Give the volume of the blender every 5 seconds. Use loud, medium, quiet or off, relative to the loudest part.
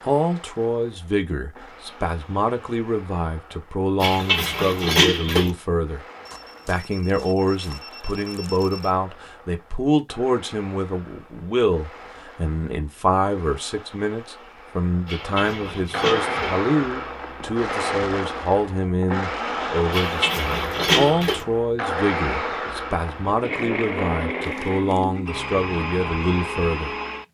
quiet, quiet, quiet, loud, loud, loud.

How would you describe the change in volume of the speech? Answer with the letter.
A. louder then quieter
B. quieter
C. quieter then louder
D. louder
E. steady
E.